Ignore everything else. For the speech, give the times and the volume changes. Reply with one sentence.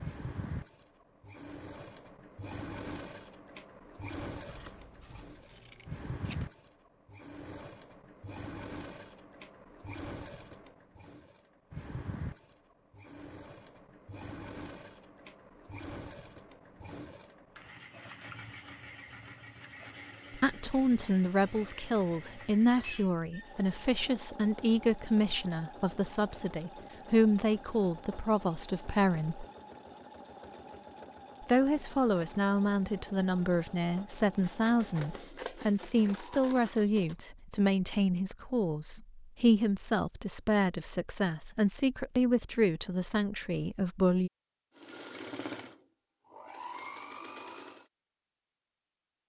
You can hear the speech from 20.3 to 29.4 s, at a steady volume; and from 31.4 to 44.3 s, at a steady volume.